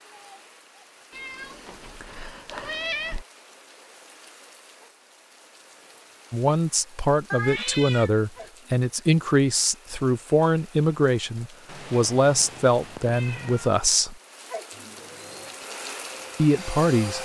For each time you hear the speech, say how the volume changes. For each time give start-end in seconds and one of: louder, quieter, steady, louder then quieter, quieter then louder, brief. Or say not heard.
6.3-14.2 steady
16.4-17.2 brief.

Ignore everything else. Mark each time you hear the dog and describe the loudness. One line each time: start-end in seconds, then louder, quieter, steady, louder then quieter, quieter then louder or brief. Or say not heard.
not heard.